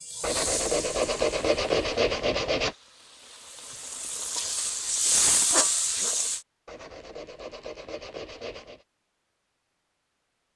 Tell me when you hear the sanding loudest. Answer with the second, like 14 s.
2 s.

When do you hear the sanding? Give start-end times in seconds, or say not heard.
0.2-2.8, 6.7-8.8.